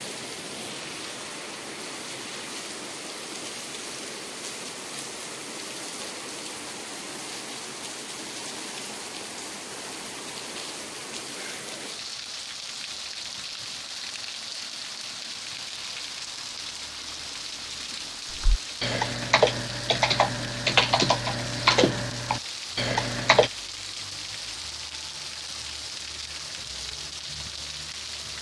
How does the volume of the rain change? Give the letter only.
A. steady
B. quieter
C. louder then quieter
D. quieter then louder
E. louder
A.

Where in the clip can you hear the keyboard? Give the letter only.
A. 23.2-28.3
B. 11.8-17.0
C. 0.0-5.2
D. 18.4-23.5
D.